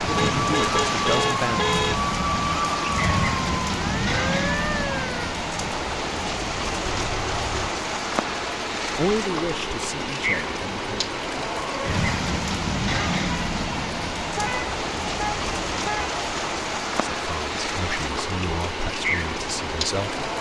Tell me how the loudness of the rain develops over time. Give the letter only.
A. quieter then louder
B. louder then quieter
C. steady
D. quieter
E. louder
C.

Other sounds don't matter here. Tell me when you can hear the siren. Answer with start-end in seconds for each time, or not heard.
0.0-5.3.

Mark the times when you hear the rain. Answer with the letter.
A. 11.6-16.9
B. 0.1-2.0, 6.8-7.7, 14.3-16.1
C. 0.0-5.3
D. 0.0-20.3
D.